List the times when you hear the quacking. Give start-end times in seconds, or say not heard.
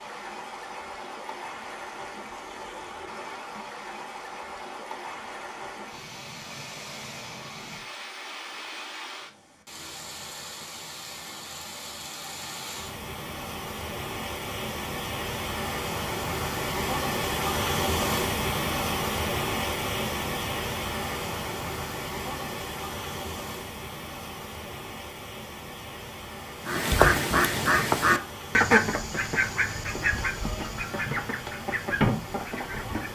26.6-33.1.